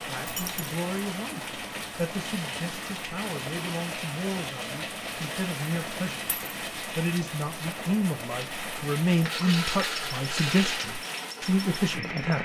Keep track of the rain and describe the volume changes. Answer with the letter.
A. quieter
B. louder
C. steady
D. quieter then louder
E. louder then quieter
C.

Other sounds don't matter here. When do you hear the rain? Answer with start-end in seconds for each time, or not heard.
0.0-12.4.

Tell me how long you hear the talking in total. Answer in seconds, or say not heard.
12 s.